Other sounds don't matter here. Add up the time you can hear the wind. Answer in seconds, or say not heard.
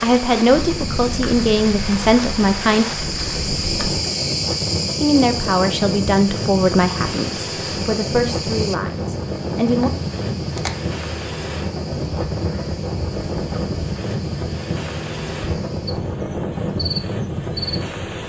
18 s.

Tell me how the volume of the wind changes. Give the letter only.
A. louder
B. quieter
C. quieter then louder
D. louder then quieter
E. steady
E.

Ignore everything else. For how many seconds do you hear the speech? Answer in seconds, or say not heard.
8 s.